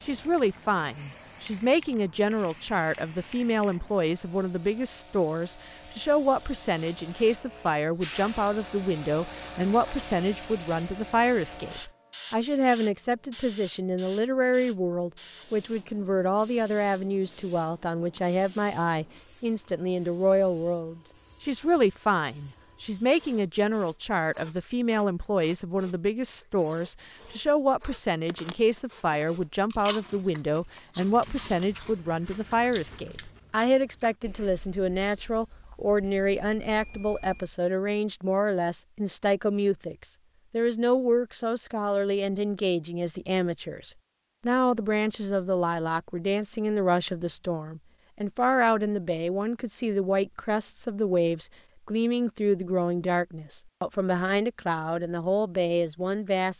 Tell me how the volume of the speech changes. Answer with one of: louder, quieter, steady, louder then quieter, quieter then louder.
steady.